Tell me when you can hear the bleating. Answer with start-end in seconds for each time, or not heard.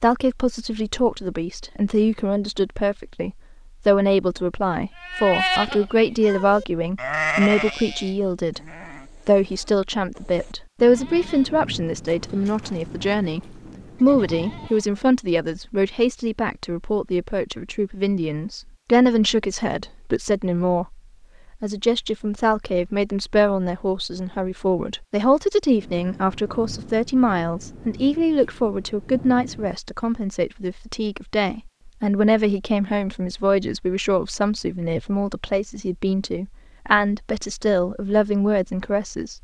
5.0-15.0.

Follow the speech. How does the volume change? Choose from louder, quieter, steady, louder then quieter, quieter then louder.
steady.